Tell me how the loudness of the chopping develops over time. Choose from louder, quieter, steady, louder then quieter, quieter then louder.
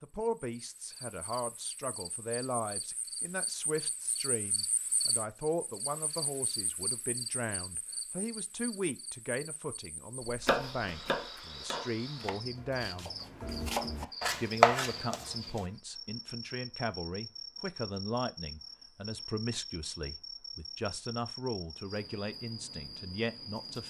quieter then louder.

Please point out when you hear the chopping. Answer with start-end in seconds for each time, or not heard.
10.2-15.6.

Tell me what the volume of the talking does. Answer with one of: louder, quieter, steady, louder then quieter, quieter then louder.
steady.